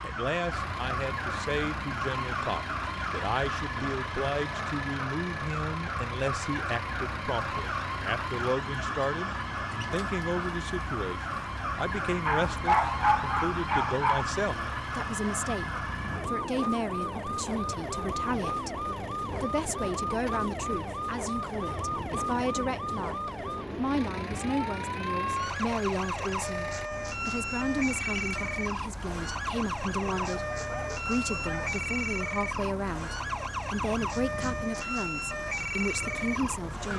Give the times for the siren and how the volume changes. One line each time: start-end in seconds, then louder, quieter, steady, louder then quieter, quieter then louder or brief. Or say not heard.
0.0-36.9 steady.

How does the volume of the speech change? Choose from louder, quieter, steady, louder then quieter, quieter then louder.
steady.